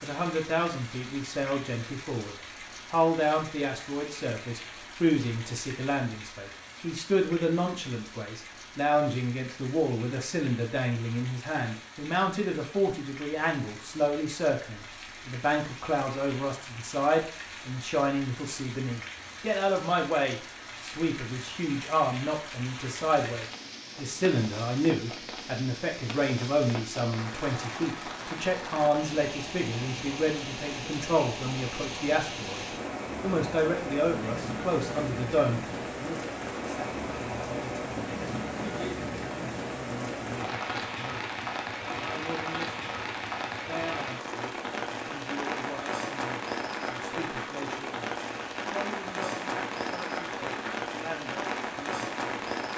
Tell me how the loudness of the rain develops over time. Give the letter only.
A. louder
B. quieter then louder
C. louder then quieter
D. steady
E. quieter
A.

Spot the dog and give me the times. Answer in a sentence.
The dog can't be heard in this clip.